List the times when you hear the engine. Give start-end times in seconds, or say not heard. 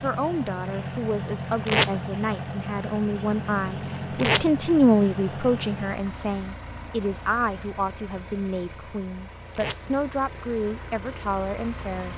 0.0-12.1.